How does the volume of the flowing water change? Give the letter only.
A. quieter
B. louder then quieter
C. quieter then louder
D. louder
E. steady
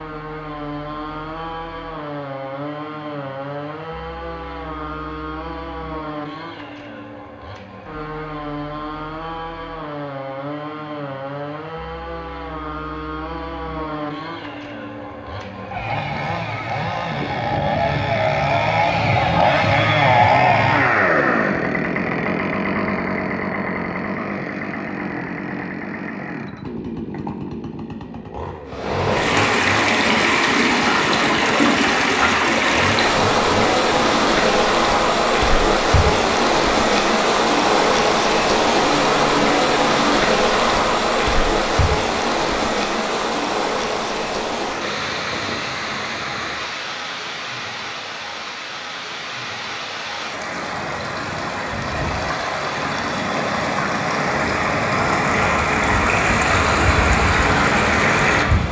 C.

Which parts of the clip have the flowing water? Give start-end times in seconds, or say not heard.
28.6-58.6.